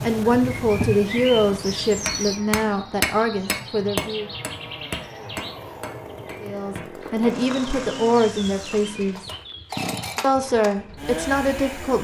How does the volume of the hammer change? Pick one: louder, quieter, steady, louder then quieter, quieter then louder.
quieter.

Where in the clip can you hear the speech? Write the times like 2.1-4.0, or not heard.
0.0-4.3, 6.4-9.2, 10.2-11.9.